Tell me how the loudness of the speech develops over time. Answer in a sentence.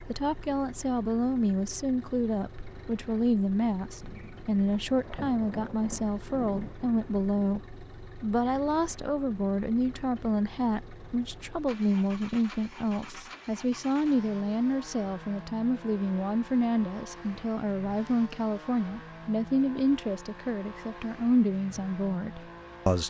The loudness of the speech stays about the same.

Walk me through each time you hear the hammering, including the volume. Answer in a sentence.
The hammering can't be heard in this clip.